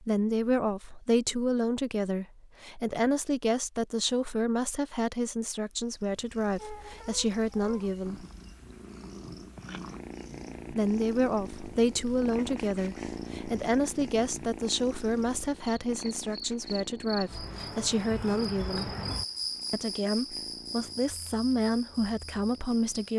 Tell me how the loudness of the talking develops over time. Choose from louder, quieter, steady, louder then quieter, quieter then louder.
steady.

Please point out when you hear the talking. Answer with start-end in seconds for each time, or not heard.
0.0-8.2, 10.7-18.9, 19.7-23.1.